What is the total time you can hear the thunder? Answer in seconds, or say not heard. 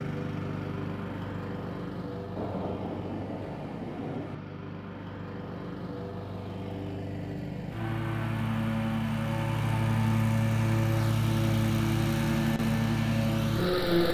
2 s.